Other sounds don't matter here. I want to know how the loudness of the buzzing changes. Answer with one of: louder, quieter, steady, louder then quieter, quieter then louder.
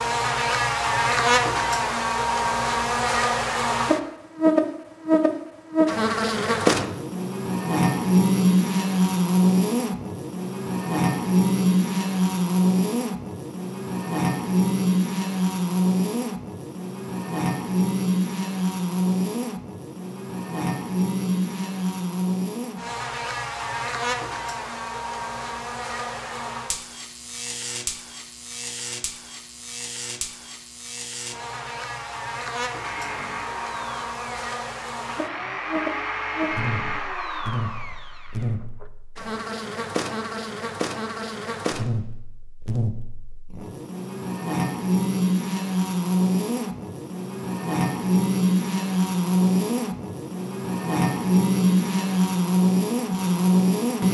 quieter then louder.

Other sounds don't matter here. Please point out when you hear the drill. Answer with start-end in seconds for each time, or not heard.
32.6-38.9.